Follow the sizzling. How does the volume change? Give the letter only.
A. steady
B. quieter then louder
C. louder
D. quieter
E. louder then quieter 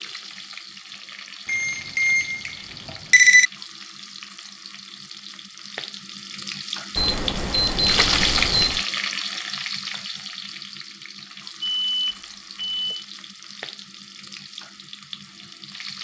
E.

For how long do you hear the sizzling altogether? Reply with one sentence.
The sizzling can be heard for 16 seconds in total.